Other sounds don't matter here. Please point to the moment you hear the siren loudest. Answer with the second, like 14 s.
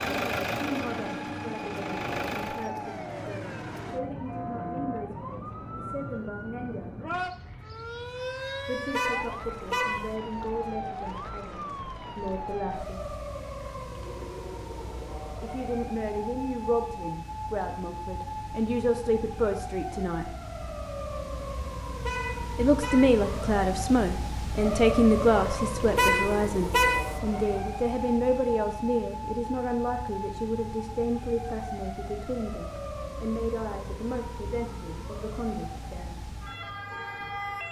25 s.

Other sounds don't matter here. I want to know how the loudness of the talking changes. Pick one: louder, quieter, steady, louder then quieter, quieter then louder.
louder then quieter.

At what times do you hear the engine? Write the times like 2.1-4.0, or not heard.
0.0-2.7.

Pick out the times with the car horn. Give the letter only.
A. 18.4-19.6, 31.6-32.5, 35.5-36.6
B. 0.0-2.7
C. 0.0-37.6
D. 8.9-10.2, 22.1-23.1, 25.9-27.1
D.